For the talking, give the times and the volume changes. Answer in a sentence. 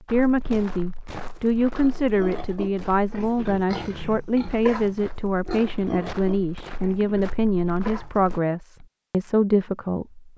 The talking can be heard from 0.1 to 10.2 s, at a steady volume.